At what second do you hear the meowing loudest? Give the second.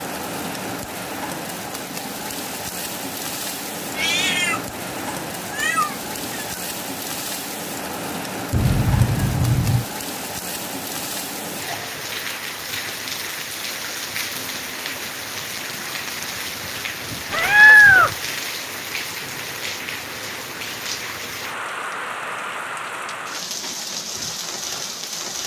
18 s.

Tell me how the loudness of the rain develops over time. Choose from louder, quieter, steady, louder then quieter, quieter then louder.
steady.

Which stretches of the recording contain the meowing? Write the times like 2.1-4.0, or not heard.
4.0-6.6, 8.5-9.8, 17.3-18.1.